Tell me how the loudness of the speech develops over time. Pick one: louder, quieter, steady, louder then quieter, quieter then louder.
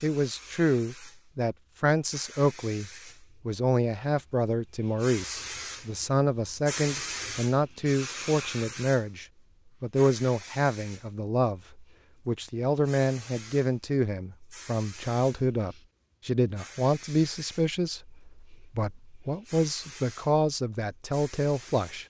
steady.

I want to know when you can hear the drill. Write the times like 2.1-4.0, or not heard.
not heard.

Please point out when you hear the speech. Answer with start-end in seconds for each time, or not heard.
0.0-22.0.